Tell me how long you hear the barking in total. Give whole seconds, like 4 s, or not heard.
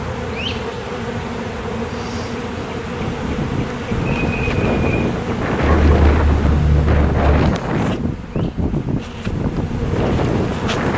2 s.